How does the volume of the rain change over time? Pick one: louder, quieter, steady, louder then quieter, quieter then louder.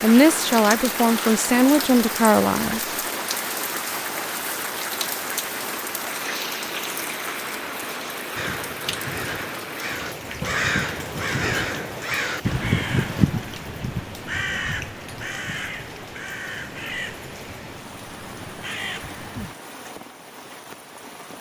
quieter.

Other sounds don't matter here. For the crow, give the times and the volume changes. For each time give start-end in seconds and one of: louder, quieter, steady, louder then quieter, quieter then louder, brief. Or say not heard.
8.3-19.6 quieter.